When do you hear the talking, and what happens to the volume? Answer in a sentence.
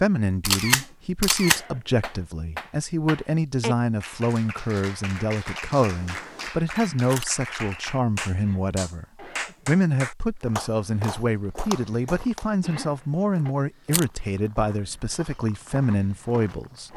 The talking can be heard from 0.0 to 9.1 s, at a steady volume; and from 9.7 to 16.9 s, at a steady volume.